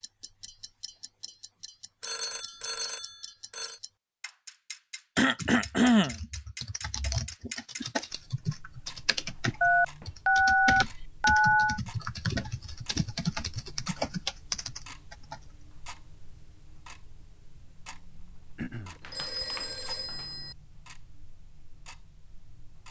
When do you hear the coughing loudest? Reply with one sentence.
The volume of the coughing peaks at 6 seconds.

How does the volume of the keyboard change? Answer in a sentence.
The loudness of the keyboard goes up.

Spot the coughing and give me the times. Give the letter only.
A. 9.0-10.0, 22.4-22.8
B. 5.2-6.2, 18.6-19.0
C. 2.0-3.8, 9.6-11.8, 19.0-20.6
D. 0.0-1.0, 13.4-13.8
B.